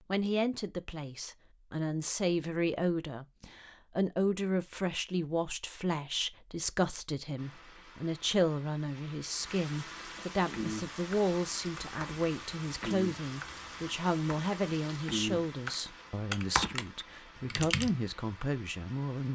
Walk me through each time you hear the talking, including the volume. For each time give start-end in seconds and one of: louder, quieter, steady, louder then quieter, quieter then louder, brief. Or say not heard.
0.1-19.2 steady.